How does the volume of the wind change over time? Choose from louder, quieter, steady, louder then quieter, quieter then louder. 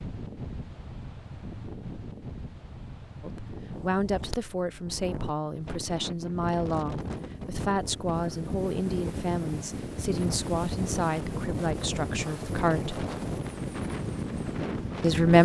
louder.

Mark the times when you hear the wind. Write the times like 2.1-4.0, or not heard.
0.0-15.3.